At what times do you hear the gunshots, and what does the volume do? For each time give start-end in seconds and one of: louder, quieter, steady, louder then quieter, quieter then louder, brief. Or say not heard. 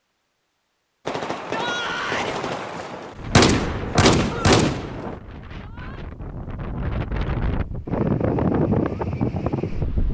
1.1-5.2 louder.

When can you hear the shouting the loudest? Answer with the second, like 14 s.
2 s.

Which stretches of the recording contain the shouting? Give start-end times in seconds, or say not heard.
1.4-2.4, 5.5-6.0.